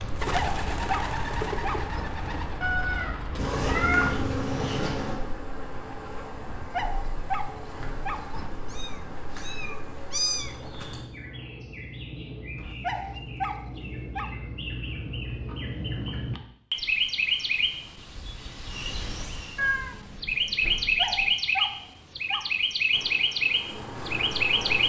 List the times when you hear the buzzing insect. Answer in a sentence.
The buzzing insect can be heard from 3.4 to 11.1 s and from 22.9 to 24.8 s.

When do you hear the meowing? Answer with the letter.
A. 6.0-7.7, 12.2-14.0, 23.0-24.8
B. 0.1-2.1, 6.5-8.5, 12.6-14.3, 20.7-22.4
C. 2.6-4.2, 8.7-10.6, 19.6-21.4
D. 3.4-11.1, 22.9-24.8
C.